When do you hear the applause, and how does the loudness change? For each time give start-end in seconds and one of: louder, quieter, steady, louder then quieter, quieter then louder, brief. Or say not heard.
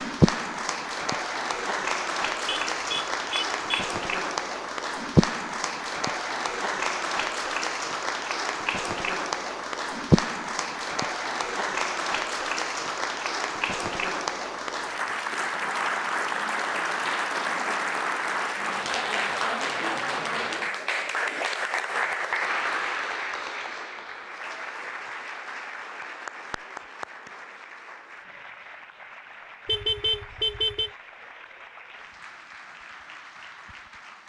0.0-34.2 quieter.